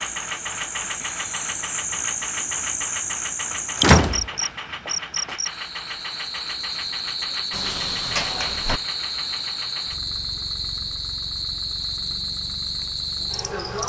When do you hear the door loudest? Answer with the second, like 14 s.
4 s.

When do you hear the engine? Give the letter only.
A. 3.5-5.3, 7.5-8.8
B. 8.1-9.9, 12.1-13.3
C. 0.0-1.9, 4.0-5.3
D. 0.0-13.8
D.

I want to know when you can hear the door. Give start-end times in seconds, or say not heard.
3.5-5.3, 7.5-8.8.